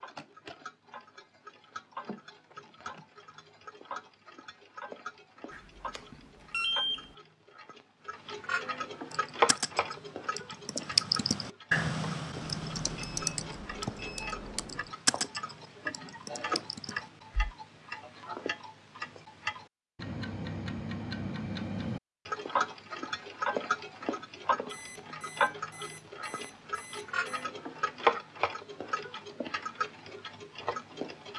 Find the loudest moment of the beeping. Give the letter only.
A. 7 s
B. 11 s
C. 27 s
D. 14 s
A.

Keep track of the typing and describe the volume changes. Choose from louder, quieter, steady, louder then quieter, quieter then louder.
louder then quieter.